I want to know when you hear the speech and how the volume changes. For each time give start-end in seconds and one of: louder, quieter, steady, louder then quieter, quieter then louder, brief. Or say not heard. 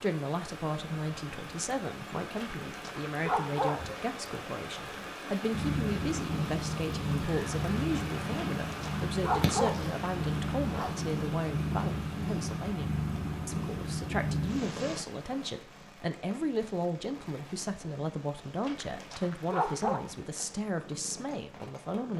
0.0-22.1 steady.